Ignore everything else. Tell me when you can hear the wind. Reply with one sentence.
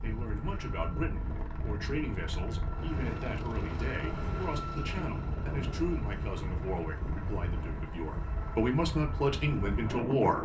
The wind can be heard from 0.0 to 10.4 s.